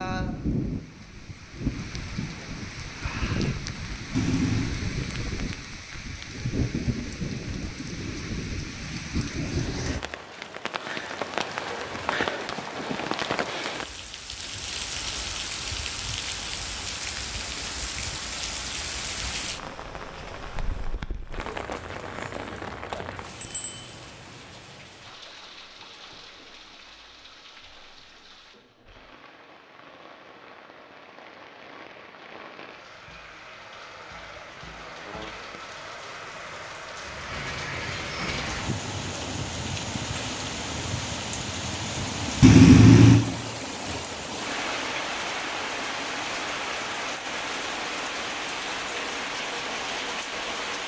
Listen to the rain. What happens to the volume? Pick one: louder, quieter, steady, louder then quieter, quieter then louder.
quieter then louder.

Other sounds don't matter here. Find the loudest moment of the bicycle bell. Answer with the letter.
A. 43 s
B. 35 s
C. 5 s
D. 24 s
A.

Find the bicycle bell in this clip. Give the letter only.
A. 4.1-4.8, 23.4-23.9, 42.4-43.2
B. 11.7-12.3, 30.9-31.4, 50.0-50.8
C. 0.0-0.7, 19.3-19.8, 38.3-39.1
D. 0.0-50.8
A.